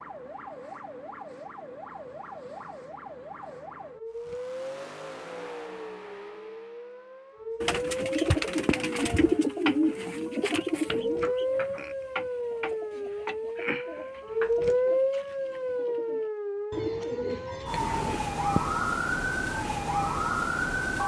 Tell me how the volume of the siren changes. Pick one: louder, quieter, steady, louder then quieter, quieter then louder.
louder.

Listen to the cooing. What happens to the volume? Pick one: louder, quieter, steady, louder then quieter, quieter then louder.
quieter then louder.